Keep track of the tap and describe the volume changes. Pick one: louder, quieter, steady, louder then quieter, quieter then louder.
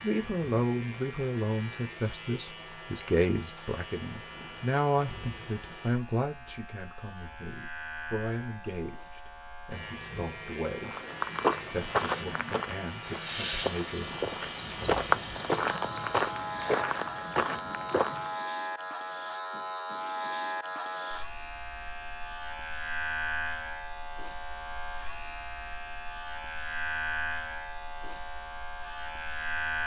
louder then quieter.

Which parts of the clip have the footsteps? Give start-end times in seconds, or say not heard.
10.8-18.3.